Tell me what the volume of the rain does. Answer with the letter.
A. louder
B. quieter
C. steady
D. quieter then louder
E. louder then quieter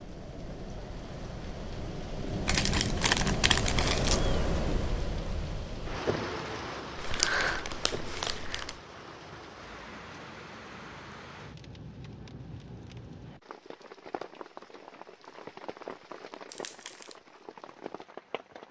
B.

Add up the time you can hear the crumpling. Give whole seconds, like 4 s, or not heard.
4 s.